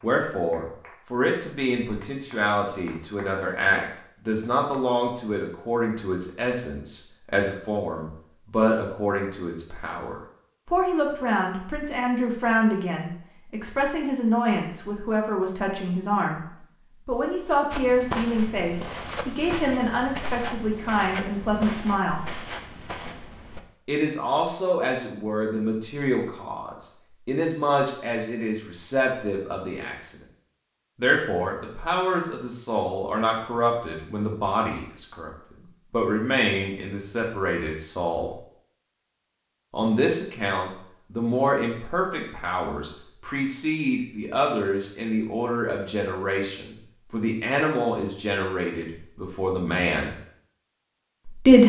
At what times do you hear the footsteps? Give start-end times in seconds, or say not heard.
17.7-23.6.